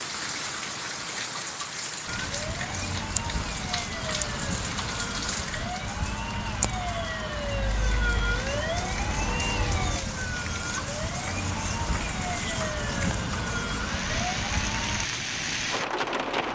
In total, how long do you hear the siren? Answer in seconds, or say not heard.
13 s.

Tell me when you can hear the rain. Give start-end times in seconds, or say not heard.
0.0-16.5.